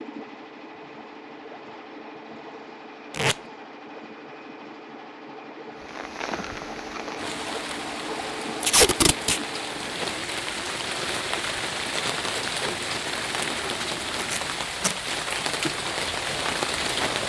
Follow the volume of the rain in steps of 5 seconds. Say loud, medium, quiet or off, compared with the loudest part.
off, medium, loud, loud.